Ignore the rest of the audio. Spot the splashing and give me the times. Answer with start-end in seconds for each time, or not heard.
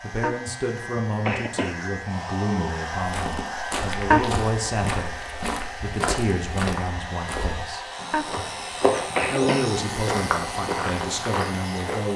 not heard.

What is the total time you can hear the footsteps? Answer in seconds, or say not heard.
9 s.